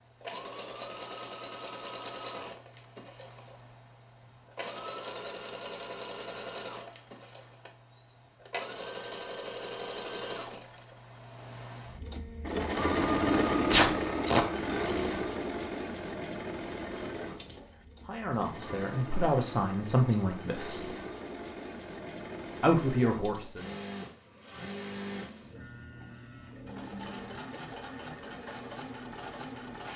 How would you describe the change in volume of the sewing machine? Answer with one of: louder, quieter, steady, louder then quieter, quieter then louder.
louder then quieter.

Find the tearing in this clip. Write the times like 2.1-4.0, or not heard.
13.3-14.4.